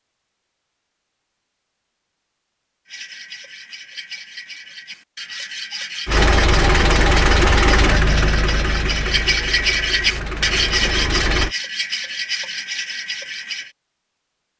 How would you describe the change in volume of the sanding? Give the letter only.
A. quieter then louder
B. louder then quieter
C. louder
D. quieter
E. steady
B.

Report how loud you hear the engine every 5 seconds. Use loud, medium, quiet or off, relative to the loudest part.
off, loud, medium.